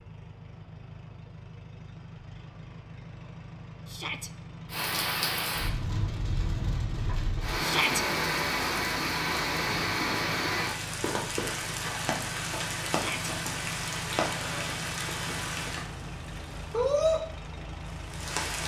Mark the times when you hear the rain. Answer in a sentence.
The rain can be heard from 4.7 to 18.6 s.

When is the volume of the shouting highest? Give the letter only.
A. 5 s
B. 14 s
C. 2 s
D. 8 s
D.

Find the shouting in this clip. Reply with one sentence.
The shouting can be heard from 3.9 to 4.3 s, from 7.6 to 8.1 s and from 12.8 to 13.3 s.